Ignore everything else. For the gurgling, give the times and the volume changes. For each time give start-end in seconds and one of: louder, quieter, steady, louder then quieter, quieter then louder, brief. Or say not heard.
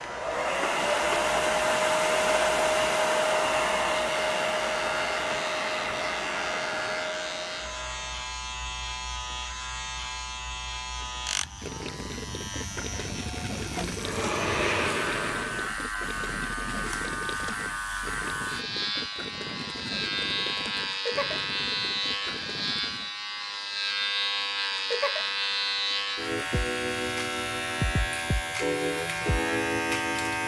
10.9-23.1 steady.